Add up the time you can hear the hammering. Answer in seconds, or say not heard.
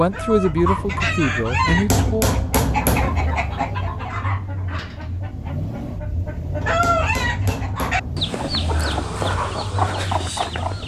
3 s.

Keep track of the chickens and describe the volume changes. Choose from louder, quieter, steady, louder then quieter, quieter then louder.
quieter then louder.